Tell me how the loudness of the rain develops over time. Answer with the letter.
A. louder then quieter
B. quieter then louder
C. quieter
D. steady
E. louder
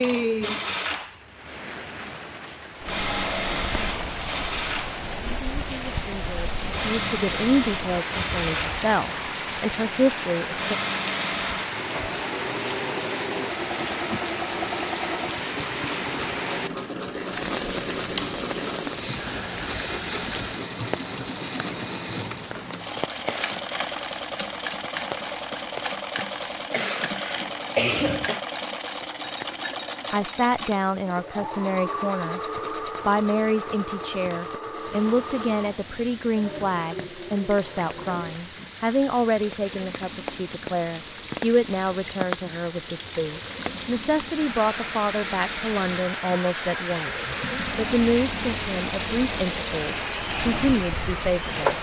B.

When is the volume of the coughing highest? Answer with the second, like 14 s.
28 s.